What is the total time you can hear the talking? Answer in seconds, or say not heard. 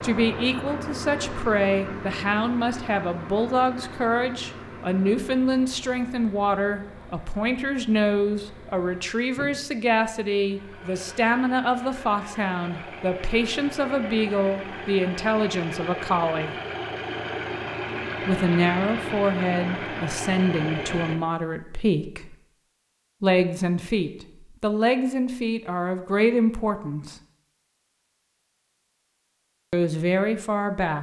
26 s.